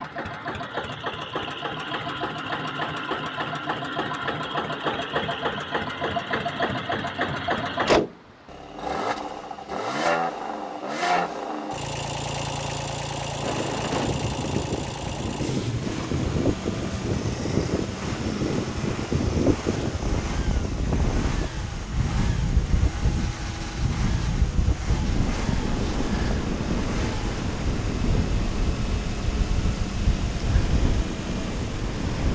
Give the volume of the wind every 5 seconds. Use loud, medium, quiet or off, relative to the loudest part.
off, off, loud, loud, loud, loud, loud.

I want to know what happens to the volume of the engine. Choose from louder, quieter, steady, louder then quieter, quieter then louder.
quieter.